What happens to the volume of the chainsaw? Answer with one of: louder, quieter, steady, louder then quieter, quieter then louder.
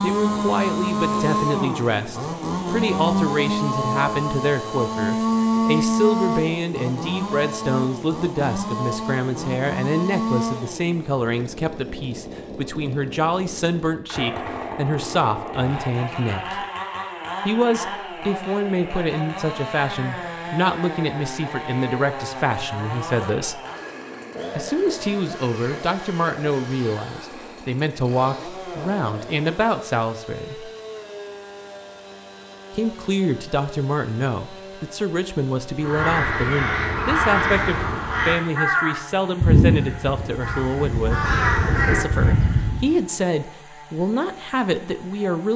quieter.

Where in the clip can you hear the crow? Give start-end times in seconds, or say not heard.
35.8-42.9.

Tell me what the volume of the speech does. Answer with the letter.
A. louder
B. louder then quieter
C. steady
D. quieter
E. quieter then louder
C.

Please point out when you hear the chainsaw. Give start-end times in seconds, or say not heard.
0.0-45.5.